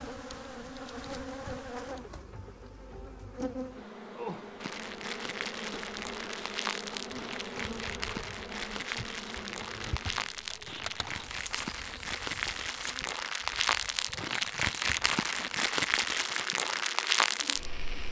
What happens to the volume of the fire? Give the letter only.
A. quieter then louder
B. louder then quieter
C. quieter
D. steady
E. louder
E.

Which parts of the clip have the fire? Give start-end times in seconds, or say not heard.
4.6-18.0.